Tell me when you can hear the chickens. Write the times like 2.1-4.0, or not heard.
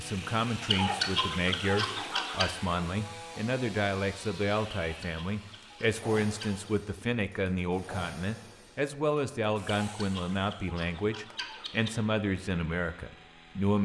0.6-2.5, 4.8-6.7, 9.7-11.9.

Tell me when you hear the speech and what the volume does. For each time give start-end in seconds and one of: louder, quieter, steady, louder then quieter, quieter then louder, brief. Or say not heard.
0.0-13.7 steady.